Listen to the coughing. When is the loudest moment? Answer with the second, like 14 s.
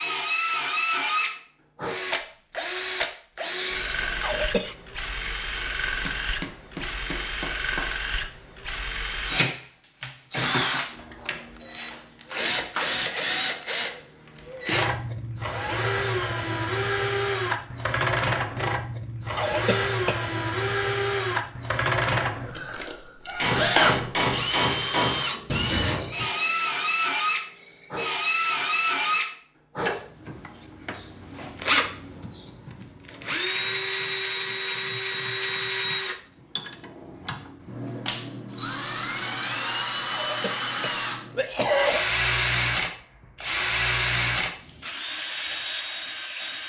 42 s.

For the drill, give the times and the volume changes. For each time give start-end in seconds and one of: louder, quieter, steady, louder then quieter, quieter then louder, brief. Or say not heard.
0.0-46.6 steady.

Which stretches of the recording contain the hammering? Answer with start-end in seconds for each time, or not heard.
5.5-8.0, 23.4-25.2.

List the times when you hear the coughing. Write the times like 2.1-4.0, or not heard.
4.2-4.8, 19.4-20.2, 40.1-42.0.